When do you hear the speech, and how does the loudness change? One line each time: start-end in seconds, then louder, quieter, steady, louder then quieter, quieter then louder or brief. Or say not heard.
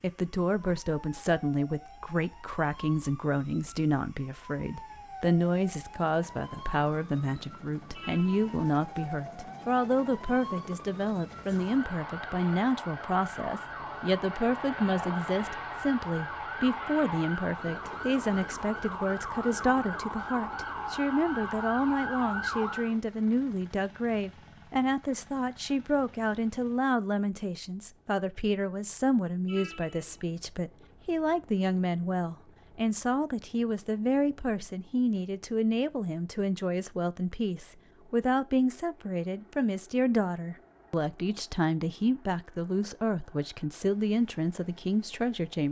0.0-45.6 steady.